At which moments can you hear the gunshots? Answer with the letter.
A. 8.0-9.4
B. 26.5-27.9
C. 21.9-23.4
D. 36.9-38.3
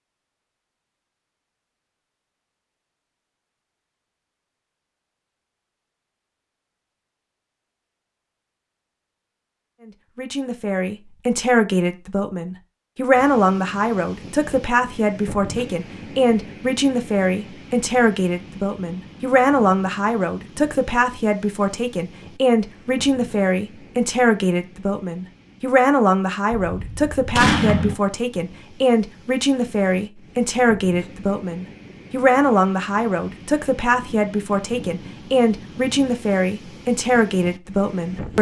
B.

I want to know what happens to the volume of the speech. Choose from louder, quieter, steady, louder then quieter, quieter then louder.
steady.